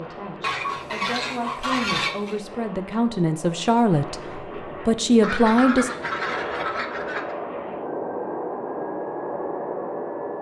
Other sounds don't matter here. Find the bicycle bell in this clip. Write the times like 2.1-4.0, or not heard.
not heard.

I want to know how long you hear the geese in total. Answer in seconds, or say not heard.
4 s.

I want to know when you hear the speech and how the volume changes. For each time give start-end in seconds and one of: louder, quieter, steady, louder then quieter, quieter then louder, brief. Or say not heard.
0.0-5.9 louder.